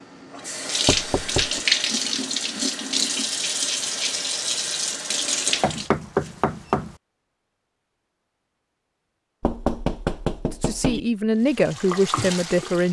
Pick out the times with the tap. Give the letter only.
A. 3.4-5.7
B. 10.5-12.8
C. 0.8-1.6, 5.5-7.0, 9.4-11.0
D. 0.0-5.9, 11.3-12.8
D.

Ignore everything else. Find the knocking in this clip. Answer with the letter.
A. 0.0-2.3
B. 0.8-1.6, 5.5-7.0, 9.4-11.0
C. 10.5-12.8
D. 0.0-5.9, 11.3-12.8
B.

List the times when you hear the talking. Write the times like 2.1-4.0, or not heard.
10.5-12.8.